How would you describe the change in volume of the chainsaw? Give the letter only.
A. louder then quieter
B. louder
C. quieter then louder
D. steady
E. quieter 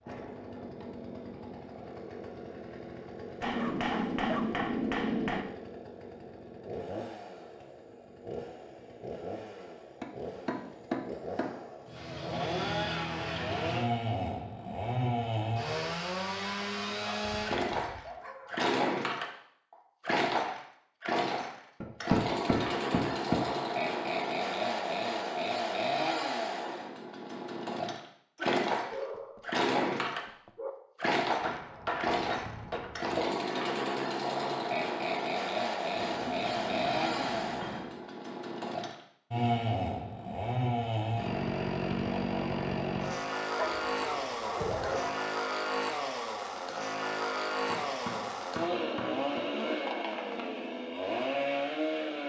B.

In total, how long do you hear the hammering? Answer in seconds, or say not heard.
11 s.